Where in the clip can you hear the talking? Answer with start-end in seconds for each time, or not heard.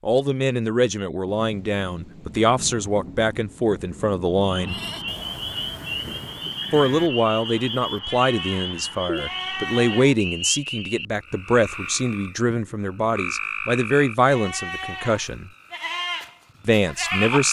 0.0-4.8, 6.7-15.5, 16.6-17.4.